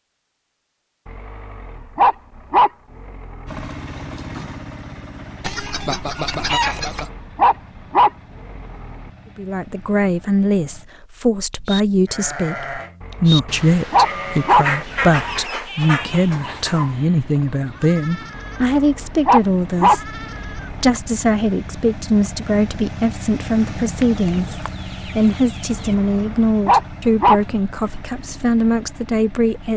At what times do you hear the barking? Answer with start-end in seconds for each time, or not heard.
1.1-3.7, 6.7-9.1, 13.0-15.4, 18.4-20.9, 25.8-27.4.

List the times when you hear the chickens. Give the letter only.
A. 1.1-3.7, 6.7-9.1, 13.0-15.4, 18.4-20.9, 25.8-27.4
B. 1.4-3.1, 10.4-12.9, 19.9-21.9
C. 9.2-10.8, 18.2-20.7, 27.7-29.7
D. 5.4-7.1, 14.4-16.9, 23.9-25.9
D.